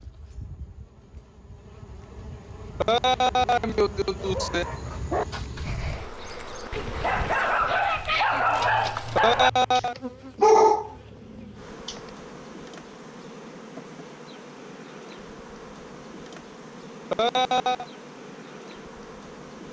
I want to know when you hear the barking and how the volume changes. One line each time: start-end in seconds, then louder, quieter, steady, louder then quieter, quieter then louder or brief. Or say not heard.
4.2-12.0 louder.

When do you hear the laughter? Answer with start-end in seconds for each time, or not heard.
2.8-4.7, 9.2-9.9, 17.1-17.9.